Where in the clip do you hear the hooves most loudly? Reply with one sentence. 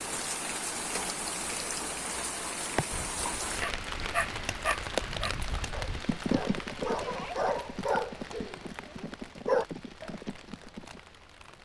The volume of the hooves peaks at 6 seconds.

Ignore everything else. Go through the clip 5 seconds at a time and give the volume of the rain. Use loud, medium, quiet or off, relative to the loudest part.
loud, medium, quiet.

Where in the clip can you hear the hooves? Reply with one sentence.
The hooves can be heard from 2.9 to 11.0 s.